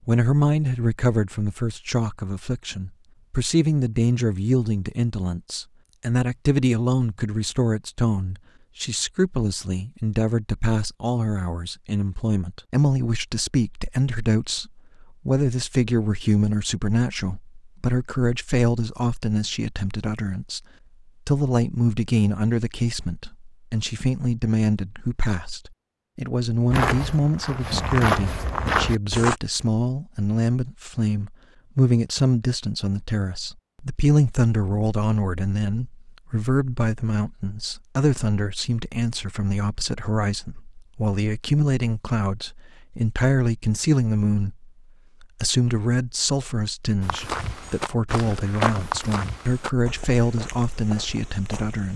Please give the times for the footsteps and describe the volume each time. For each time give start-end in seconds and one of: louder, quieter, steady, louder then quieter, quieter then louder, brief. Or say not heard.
26.7-29.4 brief
47.0-51.9 louder then quieter.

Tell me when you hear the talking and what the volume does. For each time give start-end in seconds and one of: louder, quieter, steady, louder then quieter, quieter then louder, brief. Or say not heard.
0.1-20.6 steady
21.2-51.9 steady.